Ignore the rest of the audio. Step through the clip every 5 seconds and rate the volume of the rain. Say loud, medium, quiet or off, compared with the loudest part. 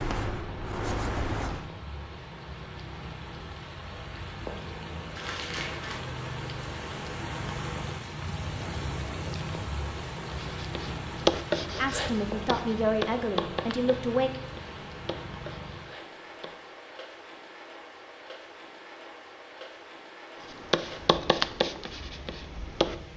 medium, loud, loud, medium, medium.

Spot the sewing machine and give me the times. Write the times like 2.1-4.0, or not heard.
not heard.